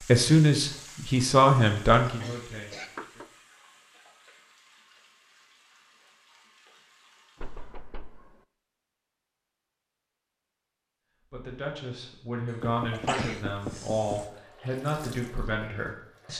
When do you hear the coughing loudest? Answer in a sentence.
The loudest moment of the coughing is at 13 seconds.